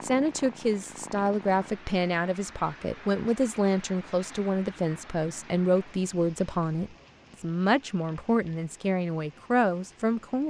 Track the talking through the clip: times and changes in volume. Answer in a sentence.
The talking can be heard from 0.0 to 10.4 s, at a steady volume.